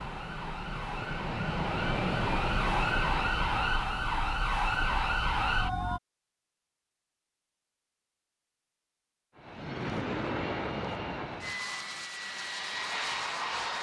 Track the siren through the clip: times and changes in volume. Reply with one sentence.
The siren can be heard from 0.0 to 6.0 s, getting louder.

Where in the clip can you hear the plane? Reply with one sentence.
The plane can be heard from 0.0 to 3.8 s and from 9.3 to 13.7 s.